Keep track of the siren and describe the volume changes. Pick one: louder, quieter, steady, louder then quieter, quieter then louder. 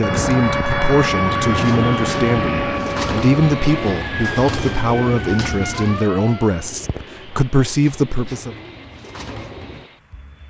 quieter.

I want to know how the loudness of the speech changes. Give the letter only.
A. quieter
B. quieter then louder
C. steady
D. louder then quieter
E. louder
C.